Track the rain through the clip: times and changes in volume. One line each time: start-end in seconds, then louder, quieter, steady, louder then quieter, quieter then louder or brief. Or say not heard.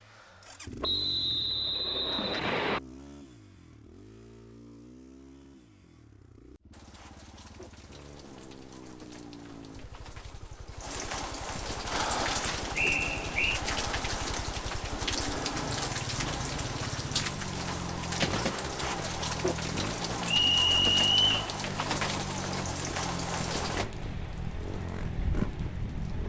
6.7-26.2 louder.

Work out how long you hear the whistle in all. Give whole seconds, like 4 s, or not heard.
4 s.